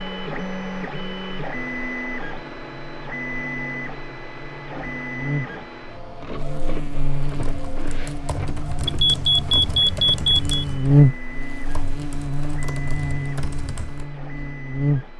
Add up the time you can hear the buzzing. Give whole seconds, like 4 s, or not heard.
15 s.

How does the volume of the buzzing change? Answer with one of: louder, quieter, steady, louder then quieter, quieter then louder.
louder then quieter.